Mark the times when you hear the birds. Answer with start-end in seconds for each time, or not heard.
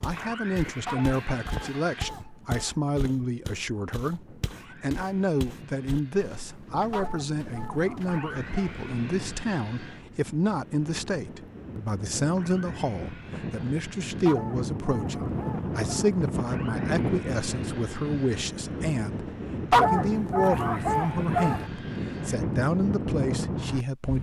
not heard.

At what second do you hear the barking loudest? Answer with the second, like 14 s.
20 s.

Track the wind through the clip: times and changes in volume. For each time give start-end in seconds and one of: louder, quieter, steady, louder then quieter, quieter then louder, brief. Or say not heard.
0.0-24.1 louder.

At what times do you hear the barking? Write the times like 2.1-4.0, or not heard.
0.8-2.8, 6.9-8.7, 14.2-16.1, 19.7-21.6.